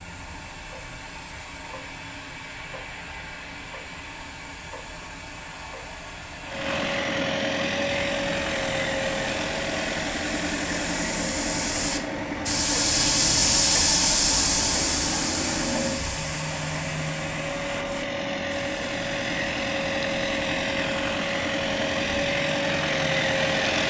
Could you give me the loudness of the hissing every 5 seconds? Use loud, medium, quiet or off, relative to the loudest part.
quiet, quiet, loud, medium, quiet.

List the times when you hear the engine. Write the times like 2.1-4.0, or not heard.
6.5-23.8.